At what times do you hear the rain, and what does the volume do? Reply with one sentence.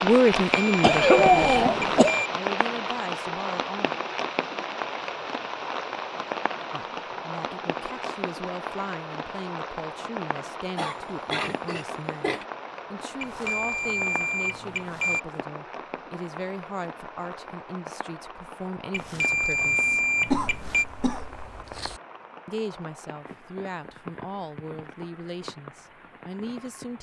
The rain can be heard from 0.0 to 26.9 s, getting quieter.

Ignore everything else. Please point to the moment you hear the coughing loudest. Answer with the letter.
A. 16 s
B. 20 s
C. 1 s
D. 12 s
C.